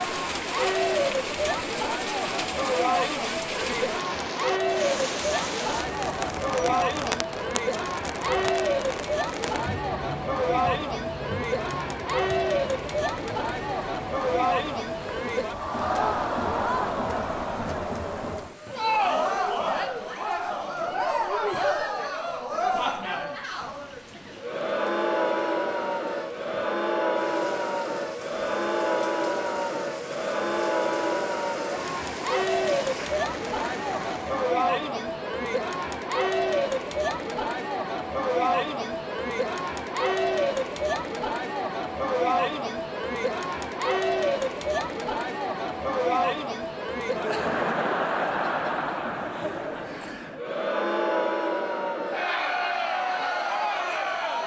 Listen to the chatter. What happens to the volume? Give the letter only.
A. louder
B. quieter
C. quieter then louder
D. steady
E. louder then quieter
D.